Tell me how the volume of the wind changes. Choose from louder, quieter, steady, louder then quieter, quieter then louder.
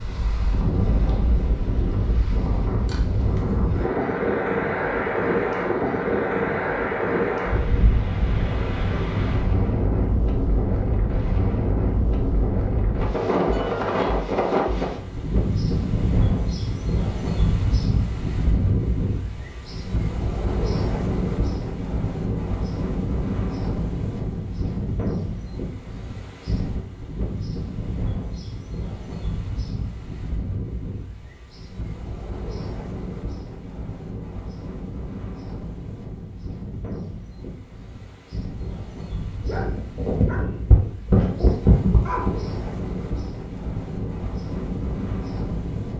quieter.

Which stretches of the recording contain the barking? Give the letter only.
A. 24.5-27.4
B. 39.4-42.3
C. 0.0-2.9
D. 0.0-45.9
B.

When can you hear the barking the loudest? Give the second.
42 s.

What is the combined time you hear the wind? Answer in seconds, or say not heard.
46 s.